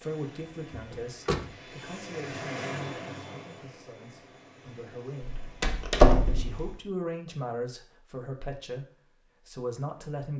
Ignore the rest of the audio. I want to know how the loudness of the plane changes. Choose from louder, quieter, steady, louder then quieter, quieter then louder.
louder then quieter.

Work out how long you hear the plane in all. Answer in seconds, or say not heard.
7 s.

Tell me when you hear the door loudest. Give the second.
6 s.